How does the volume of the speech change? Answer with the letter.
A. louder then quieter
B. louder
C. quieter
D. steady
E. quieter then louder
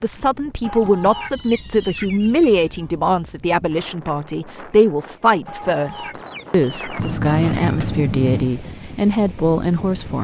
D.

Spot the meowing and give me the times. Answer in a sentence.
The meowing can be heard from 1.3 to 3.1 s and from 7.0 to 8.6 s.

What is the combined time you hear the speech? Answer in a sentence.
You can hear the speech for 10 seconds altogether.